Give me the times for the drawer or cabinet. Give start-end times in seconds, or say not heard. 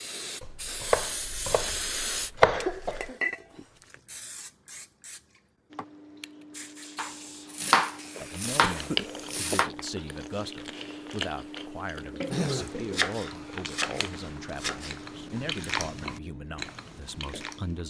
not heard.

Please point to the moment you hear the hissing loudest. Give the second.
2 s.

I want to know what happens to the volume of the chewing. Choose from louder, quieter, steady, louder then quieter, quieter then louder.
quieter then louder.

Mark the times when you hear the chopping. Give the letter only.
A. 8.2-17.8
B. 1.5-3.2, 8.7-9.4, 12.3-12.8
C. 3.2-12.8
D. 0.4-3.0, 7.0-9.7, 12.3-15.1
D.